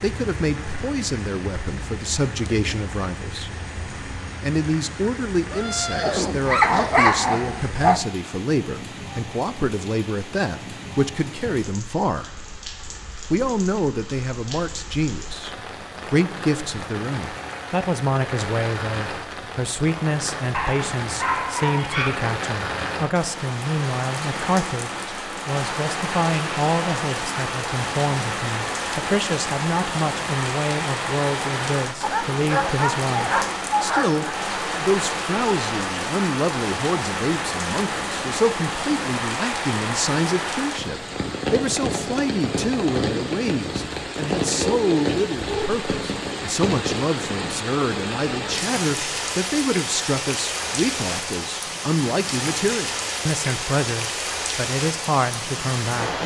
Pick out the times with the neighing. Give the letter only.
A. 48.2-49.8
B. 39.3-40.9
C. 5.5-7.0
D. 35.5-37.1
C.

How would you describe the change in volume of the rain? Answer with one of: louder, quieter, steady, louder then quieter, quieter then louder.
louder.